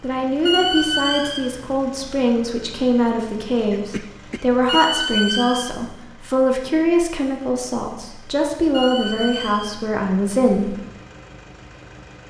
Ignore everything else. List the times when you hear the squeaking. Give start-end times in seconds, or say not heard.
0.5-1.4, 4.7-5.7, 8.7-9.7.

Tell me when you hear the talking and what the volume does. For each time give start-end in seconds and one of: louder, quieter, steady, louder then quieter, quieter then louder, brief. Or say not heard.
0.0-10.8 steady.